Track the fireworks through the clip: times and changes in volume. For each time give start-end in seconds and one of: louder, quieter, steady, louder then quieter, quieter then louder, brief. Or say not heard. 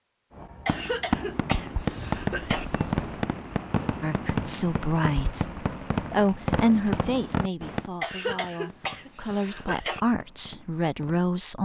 0.3-11.2 quieter.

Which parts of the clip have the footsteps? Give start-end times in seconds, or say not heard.
not heard.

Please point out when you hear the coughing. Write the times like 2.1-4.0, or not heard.
0.7-2.6, 8.0-10.0.